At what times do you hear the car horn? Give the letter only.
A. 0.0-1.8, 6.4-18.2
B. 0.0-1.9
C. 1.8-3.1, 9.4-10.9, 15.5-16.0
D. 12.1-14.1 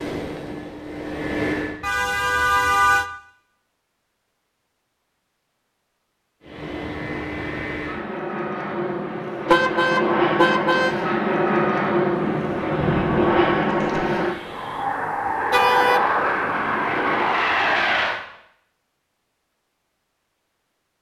C.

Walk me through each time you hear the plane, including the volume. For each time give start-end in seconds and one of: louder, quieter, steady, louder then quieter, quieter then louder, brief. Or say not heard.
0.0-1.8 brief
6.4-18.2 louder.